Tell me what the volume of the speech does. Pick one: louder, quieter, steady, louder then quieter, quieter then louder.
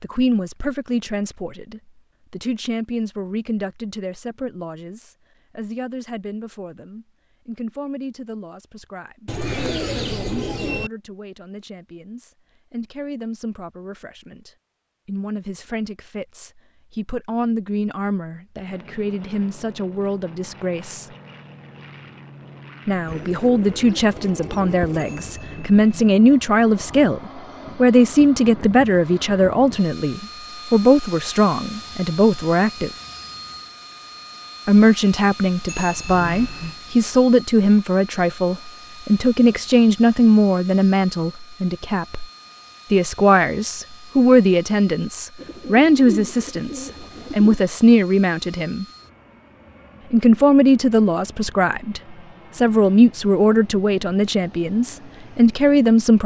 louder.